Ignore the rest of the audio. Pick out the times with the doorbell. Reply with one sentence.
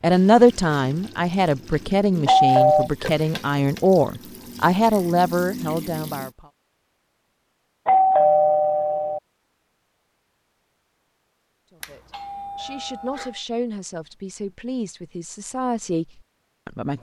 You can hear the doorbell from 2.2 to 2.9 s, from 7.8 to 9.2 s and from 11.8 to 13.3 s.